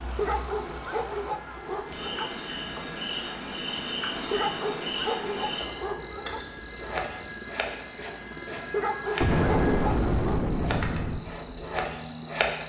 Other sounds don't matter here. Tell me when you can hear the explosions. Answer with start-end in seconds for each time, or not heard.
9.2-11.2.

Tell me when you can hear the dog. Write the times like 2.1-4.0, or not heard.
0.1-2.3, 4.3-6.5, 8.7-10.4.